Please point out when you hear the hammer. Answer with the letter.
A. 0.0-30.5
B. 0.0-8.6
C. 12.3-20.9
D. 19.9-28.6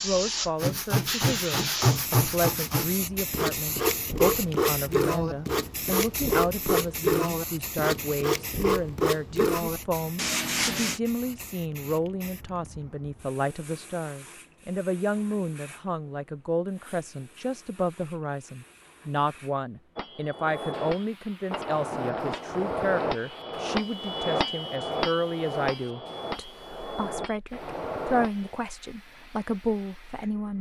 D.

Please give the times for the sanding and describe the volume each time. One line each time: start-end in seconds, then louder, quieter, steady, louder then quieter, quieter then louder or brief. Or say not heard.
0.6-11.0 steady.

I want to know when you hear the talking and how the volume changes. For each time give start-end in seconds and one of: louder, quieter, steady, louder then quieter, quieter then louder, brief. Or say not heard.
0.0-30.5 steady.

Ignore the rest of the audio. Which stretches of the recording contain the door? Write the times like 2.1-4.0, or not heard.
not heard.